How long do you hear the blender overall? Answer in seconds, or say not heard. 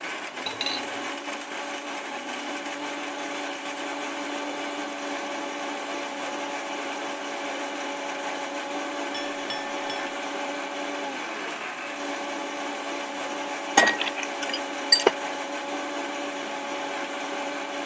18 s.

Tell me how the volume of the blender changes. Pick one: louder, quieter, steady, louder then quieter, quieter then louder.
steady.